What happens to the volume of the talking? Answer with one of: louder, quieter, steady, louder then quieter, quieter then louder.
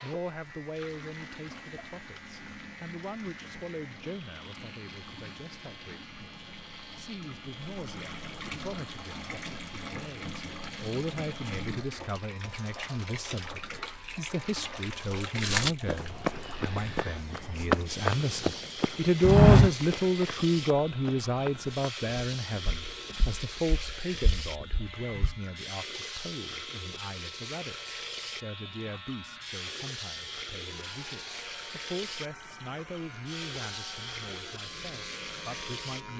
louder then quieter.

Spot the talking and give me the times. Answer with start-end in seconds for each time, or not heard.
0.0-36.1.